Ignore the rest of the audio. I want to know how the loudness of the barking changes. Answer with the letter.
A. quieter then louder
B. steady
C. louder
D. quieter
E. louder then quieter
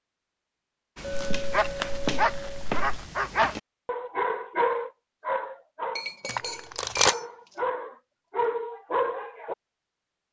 A.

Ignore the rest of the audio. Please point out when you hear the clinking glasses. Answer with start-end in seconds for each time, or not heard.
1.0-2.6, 6.0-7.2.